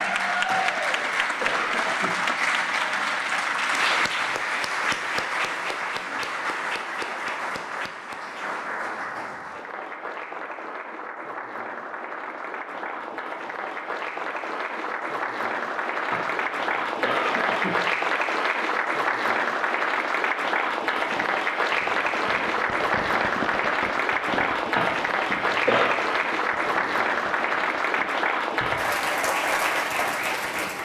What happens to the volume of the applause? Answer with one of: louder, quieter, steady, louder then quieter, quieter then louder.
quieter then louder.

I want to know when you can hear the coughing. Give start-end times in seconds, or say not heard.
0.5-2.1, 16.1-17.8, 24.8-25.9.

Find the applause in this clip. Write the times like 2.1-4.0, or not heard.
0.0-30.8.